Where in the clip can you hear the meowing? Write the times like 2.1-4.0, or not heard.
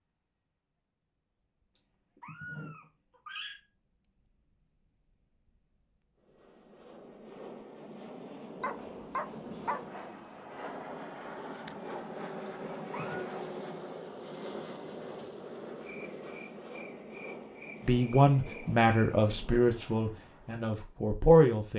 1.8-3.5, 12.4-13.2.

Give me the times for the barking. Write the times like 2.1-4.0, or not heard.
8.6-9.9.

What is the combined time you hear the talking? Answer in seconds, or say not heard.
4 s.